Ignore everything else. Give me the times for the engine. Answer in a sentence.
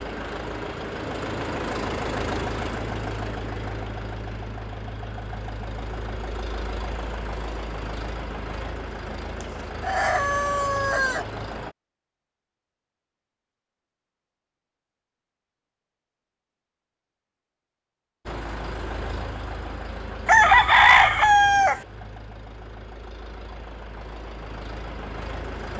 The engine can be heard from 0.0 to 11.8 s and from 18.2 to 25.7 s.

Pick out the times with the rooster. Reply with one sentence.
The rooster can be heard from 9.4 to 11.2 s and from 20.2 to 21.8 s.